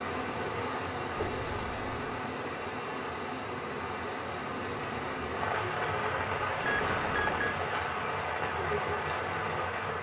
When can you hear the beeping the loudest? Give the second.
7 s.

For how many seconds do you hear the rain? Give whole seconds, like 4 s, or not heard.
10 s.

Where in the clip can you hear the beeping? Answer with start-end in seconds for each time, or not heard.
1.1-2.2, 6.6-7.5.